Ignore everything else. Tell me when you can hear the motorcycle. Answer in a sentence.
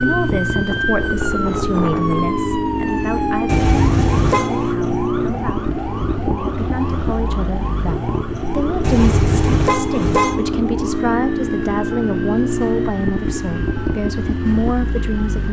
The motorcycle can be heard from 0.0 to 15.4 s.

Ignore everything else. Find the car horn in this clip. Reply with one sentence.
The car horn can be heard from 3.5 to 4.8 s and from 8.8 to 10.3 s.